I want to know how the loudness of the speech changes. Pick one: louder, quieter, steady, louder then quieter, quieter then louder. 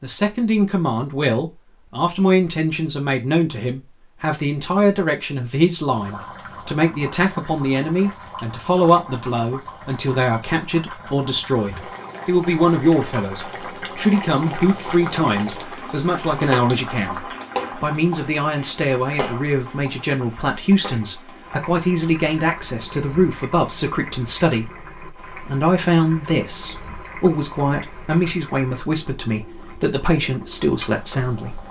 steady.